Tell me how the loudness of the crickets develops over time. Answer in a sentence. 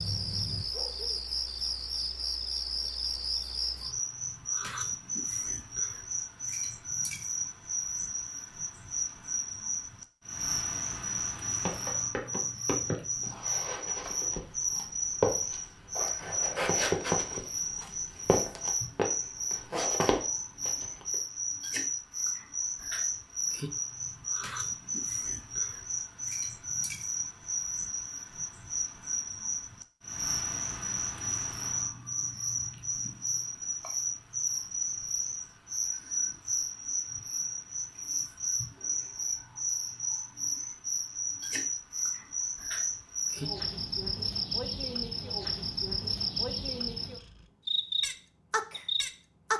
The loudness of the crickets stays about the same.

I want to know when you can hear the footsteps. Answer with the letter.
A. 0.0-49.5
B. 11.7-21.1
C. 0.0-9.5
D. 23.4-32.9
B.